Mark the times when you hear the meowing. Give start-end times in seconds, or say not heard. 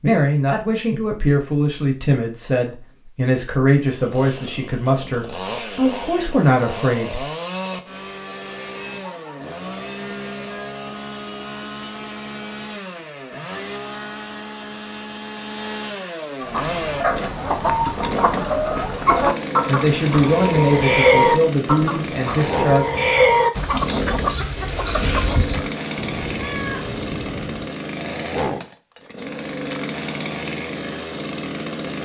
25.9-27.7.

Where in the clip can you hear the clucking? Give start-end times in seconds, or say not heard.
16.4-25.7.